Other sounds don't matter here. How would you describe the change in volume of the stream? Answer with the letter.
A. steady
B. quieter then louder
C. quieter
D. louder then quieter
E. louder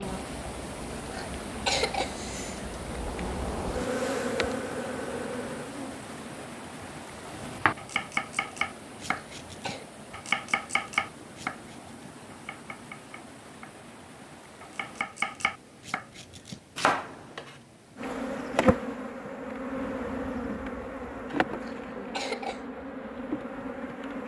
C.